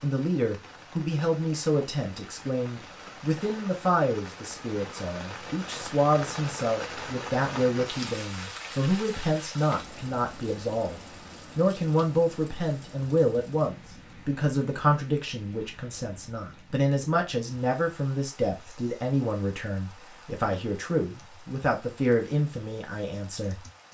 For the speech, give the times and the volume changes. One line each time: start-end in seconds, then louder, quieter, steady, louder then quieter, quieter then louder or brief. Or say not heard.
0.0-23.6 steady.